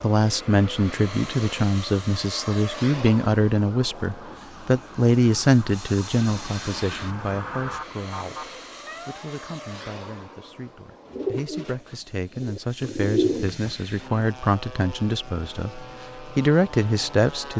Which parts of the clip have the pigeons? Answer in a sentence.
The pigeons can be heard from 11.1 to 13.7 s.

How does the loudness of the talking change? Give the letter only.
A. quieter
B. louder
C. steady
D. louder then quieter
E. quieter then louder
E.